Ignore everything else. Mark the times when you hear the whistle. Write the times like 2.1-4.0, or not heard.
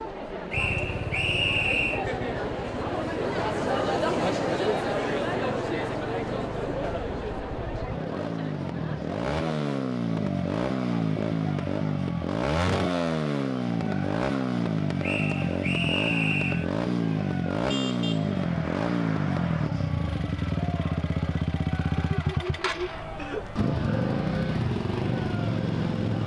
0.5-2.0, 15.0-16.6.